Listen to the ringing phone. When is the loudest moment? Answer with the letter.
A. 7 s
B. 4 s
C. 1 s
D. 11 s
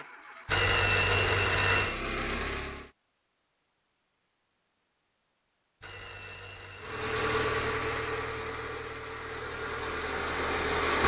C.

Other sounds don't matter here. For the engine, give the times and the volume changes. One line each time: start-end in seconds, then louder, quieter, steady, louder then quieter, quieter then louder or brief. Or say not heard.
0.0-2.9 brief
6.8-11.0 quieter then louder.